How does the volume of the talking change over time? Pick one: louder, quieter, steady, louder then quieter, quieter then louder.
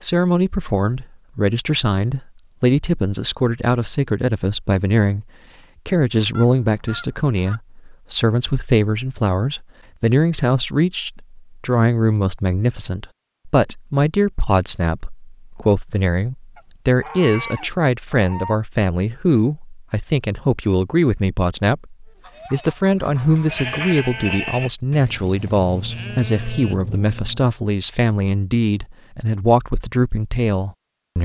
steady.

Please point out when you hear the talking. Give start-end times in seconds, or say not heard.
0.0-5.2, 5.8-31.2.